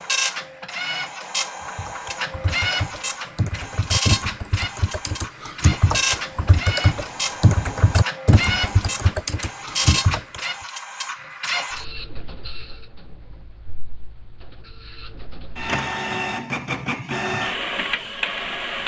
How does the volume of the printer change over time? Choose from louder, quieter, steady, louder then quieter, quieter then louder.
quieter then louder.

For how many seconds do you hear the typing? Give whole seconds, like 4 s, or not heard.
9 s.